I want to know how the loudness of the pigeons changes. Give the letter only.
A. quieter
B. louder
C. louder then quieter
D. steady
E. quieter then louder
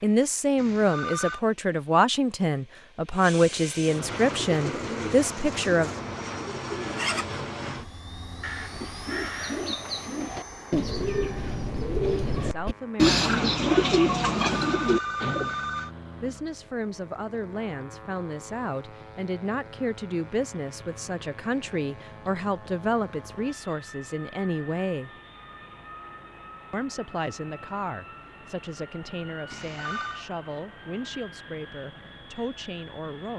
B.